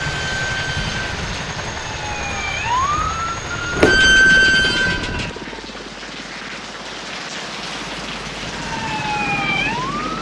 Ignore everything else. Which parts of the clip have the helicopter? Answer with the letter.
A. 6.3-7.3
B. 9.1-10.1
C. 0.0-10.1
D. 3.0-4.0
C.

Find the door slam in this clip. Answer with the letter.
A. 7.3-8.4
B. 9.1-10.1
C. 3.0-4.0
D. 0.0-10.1
C.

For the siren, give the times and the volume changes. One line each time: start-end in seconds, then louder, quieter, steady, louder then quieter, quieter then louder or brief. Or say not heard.
0.0-5.7 louder
8.4-10.0 brief.